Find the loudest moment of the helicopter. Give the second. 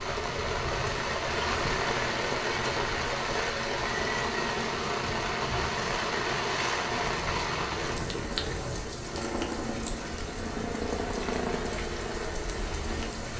11 s.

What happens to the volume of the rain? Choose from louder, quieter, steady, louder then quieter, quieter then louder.
quieter.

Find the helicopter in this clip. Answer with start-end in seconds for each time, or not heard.
0.0-13.3.